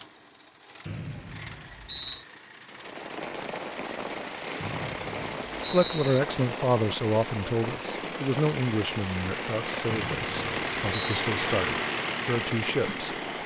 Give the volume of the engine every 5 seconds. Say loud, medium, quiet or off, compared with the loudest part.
quiet, medium, loud.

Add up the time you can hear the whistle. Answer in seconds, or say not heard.
4 s.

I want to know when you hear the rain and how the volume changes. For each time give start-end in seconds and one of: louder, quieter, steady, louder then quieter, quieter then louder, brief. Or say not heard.
2.7-13.4 steady.